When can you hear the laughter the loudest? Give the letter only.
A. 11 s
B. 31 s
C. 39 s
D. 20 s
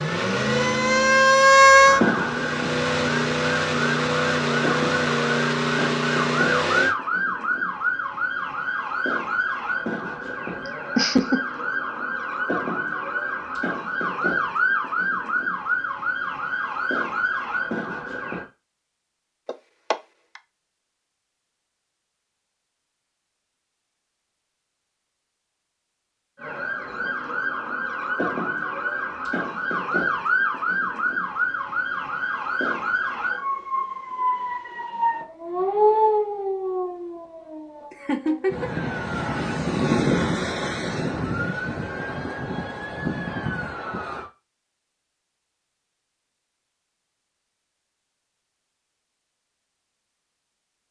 A.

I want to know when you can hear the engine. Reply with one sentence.
You can hear the engine from 0.0 to 7.0 s.